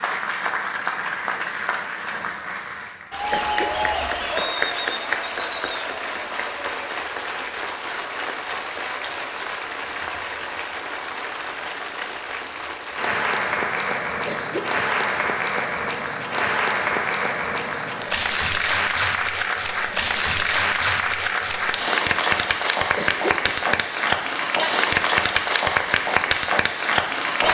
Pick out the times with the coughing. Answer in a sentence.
The coughing can be heard from 3.3 to 4.5 s, from 14.2 to 14.8 s and from 22.9 to 23.8 s.